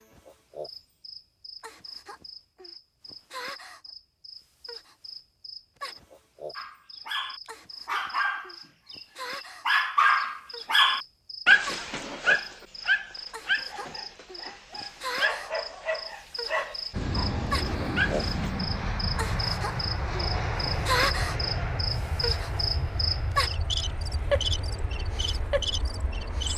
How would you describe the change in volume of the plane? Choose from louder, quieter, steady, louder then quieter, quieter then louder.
quieter.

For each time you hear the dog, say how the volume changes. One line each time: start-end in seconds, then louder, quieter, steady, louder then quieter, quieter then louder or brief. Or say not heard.
6.5-8.9 brief
9.7-18.5 quieter.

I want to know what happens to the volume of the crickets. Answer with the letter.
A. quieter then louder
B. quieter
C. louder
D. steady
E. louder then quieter
C.